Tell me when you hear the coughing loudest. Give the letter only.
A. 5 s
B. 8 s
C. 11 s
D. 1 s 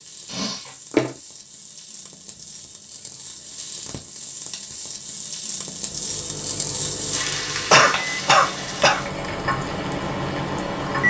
B.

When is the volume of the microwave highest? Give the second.
11 s.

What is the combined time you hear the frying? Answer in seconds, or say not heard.
11 s.